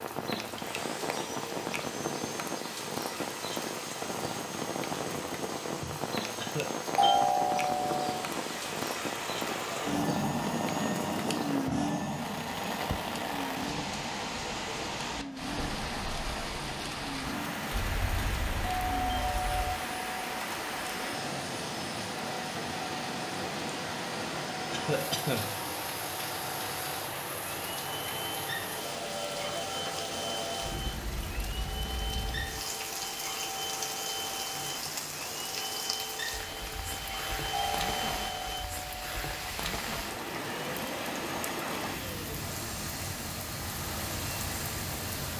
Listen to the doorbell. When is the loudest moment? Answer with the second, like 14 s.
7 s.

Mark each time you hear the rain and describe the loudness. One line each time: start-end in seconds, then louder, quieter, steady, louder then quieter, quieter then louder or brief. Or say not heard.
0.0-45.3 steady.